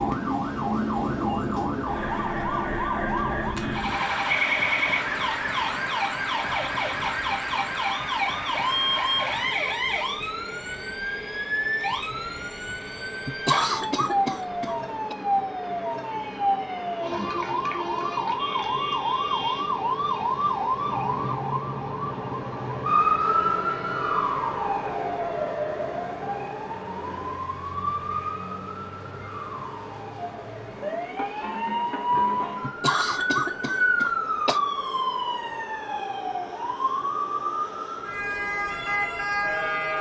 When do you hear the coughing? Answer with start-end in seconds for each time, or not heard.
13.2-15.2, 32.6-34.6.